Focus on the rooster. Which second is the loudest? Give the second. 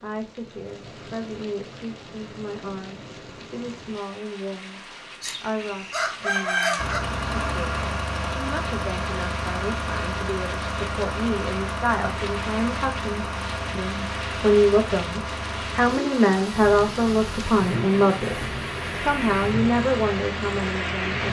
7 s.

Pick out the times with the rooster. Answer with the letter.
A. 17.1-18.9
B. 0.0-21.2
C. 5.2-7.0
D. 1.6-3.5
C.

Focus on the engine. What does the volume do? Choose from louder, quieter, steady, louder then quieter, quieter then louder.
quieter.